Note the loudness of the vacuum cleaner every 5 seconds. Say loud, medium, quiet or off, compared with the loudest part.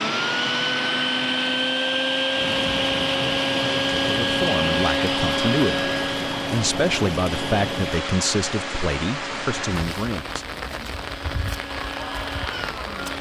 loud, medium, quiet.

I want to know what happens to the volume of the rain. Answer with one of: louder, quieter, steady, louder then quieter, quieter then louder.
steady.